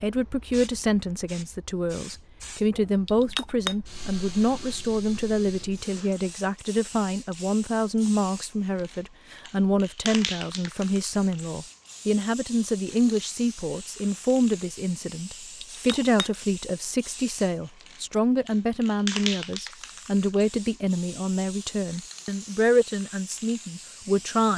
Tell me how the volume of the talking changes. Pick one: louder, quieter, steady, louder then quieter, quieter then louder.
steady.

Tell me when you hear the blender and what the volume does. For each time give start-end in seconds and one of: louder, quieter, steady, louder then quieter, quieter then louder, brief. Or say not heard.
not heard.